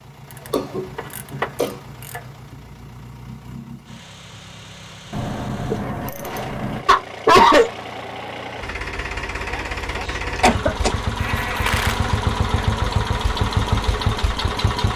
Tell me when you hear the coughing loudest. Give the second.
7 s.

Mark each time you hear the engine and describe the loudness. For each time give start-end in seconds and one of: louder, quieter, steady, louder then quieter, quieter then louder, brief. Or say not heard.
0.0-14.9 louder.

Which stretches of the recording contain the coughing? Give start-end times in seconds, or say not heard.
0.5-1.8, 6.8-7.7, 10.1-10.9.